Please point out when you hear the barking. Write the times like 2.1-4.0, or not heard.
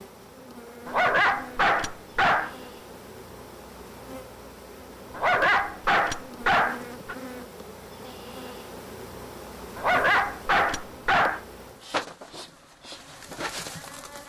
0.8-2.5, 5.1-7.2, 9.8-11.4.